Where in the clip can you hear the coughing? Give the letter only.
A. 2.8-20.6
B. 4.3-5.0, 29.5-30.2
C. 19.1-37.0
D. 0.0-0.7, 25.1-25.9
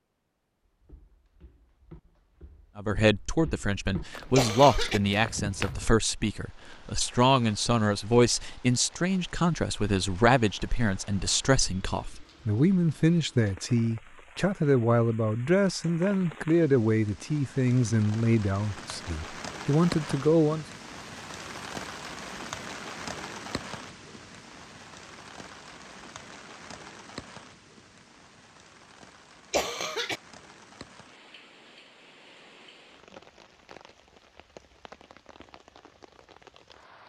B.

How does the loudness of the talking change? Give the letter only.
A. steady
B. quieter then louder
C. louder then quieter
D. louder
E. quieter
A.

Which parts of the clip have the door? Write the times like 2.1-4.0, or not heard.
not heard.